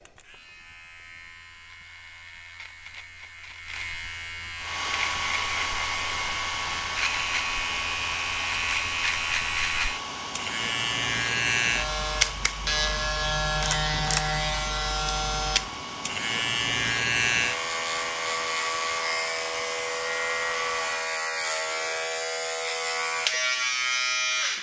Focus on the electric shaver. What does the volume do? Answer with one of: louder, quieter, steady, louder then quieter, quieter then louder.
louder.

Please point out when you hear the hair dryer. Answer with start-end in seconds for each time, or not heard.
4.5-21.1.